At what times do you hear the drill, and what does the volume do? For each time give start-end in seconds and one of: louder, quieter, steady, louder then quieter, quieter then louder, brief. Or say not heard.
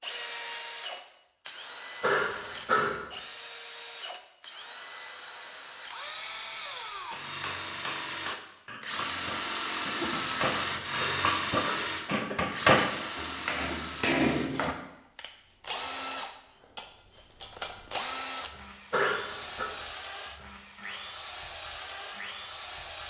0.0-23.0 louder then quieter.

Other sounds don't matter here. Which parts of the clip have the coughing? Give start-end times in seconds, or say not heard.
2.0-3.0, 11.0-12.4, 18.9-19.7.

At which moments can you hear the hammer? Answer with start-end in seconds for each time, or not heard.
7.1-14.8.